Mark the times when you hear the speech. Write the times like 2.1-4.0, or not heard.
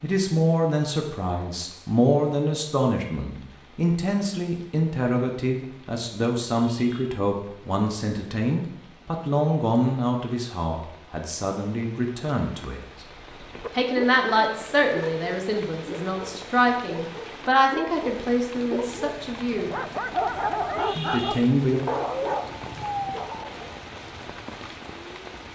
0.0-12.8, 13.7-19.8, 20.9-21.8.